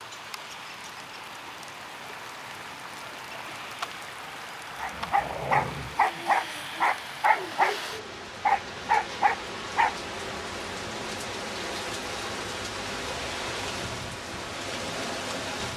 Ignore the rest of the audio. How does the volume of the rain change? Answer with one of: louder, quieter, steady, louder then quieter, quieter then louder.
louder.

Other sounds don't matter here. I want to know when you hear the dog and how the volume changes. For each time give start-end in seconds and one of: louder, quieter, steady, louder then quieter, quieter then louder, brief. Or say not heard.
4.8-9.9 steady.